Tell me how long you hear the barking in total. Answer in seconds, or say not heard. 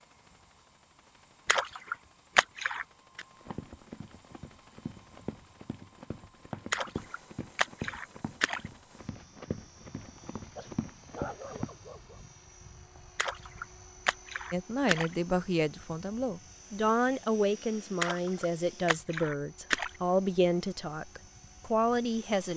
2 s.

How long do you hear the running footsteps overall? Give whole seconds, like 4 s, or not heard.
8 s.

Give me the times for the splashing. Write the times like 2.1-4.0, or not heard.
1.4-3.2, 6.7-8.6, 13.2-15.2, 18.0-19.9.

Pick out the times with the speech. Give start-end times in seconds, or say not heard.
14.5-22.5.